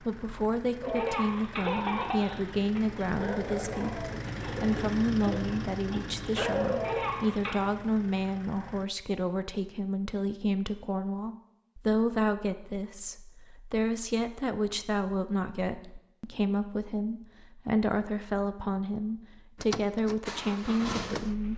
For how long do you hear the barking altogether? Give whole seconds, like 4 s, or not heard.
7 s.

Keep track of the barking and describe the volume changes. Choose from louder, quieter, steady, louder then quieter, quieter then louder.
quieter then louder.